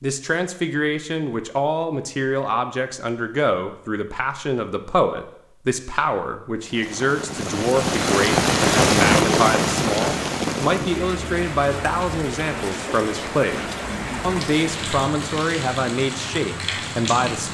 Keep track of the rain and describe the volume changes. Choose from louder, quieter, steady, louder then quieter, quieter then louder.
quieter.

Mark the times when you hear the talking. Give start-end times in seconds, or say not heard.
0.0-17.5.